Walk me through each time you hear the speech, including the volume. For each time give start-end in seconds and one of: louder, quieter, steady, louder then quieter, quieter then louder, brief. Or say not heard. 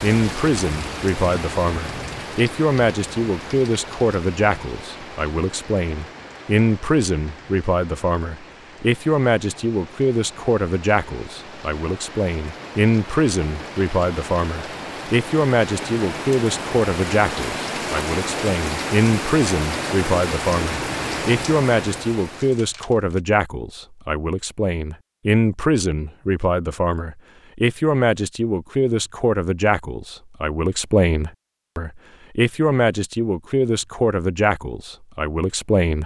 0.0-36.0 steady.